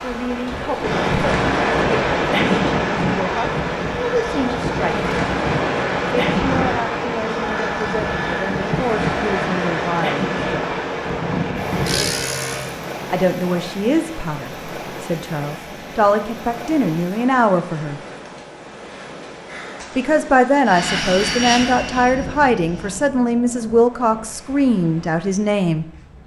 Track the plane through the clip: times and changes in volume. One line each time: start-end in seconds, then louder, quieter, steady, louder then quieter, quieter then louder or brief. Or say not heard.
0.0-12.8 steady
20.6-23.1 brief.